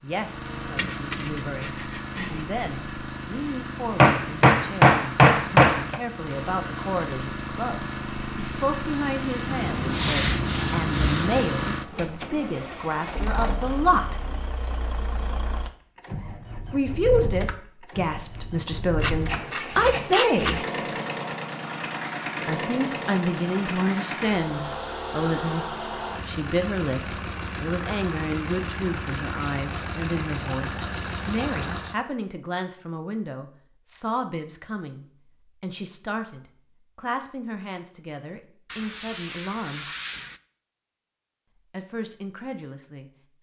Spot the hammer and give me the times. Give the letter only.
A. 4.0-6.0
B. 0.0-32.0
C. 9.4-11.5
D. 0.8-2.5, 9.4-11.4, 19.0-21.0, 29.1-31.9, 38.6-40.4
A.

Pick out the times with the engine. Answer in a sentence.
You can hear the engine from 0.0 to 32.0 s.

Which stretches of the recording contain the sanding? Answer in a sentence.
You can hear the sanding from 0.8 to 2.5 s, from 9.4 to 11.4 s, from 19.0 to 21.0 s, from 29.1 to 31.9 s and from 38.6 to 40.4 s.